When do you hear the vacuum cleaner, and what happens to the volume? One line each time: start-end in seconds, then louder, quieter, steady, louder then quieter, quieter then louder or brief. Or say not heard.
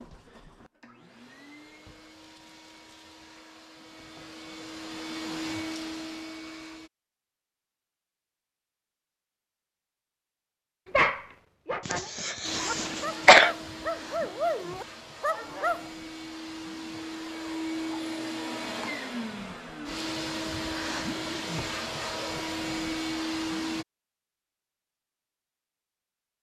0.0-6.9 louder
12.4-23.9 louder.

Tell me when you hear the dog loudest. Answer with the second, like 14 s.
11 s.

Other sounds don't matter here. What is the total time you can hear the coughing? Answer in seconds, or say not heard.
2 s.